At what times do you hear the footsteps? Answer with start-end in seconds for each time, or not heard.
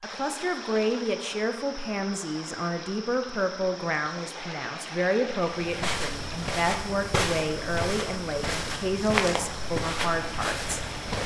5.5-11.2.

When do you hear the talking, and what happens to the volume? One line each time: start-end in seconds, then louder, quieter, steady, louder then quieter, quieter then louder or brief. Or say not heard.
0.0-11.2 steady.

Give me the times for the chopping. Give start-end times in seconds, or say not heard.
not heard.